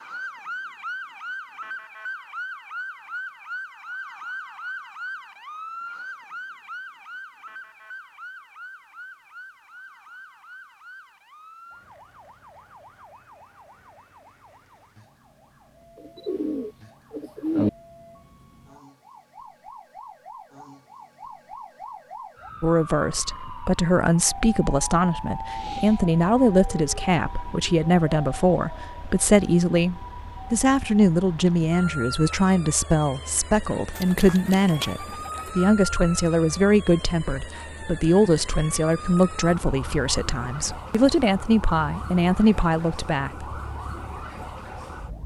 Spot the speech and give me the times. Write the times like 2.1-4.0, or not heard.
22.6-43.5.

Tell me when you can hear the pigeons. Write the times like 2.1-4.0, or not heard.
16.0-17.7, 34.0-35.5.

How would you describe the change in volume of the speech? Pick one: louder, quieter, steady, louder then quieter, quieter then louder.
steady.